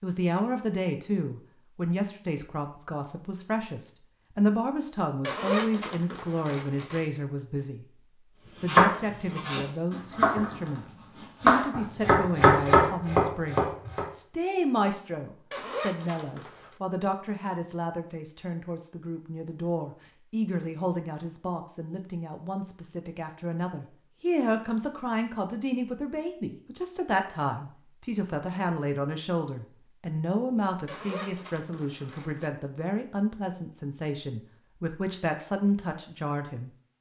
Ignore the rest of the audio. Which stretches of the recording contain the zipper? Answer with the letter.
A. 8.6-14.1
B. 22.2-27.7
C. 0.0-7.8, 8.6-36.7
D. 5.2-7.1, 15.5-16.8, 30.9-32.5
D.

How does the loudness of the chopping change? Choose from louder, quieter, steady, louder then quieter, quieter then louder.
louder.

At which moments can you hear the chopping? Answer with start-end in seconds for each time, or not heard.
8.6-14.1.